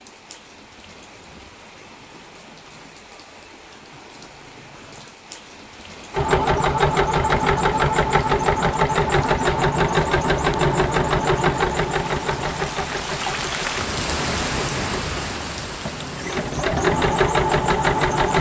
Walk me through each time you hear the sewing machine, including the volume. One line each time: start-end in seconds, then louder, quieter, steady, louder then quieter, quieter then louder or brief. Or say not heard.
6.1-18.3 quieter then louder.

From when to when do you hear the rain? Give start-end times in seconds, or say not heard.
0.0-18.3.